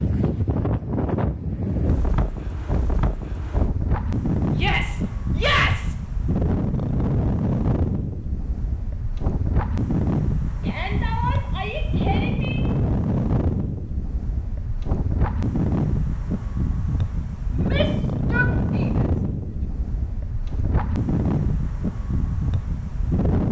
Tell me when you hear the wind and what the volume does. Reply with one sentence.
The wind can be heard from 0.0 to 23.4 s, at a steady volume.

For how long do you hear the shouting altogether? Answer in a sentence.
You can hear the shouting for 5 seconds altogether.